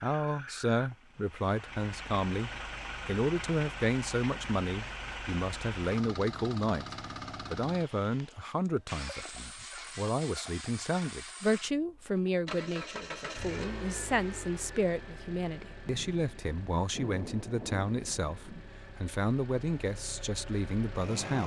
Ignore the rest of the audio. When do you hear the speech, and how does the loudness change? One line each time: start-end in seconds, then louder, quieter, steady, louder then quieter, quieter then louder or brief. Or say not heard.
0.0-21.4 steady.